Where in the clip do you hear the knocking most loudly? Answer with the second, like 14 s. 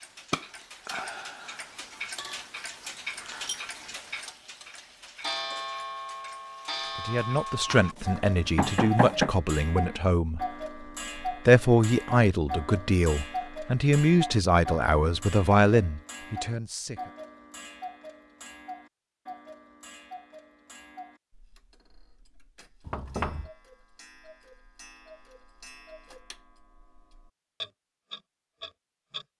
9 s.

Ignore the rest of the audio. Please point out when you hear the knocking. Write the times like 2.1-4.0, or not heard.
7.7-9.3, 22.9-23.5.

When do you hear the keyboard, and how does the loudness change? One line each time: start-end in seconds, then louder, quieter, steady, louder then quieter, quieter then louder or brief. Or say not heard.
not heard.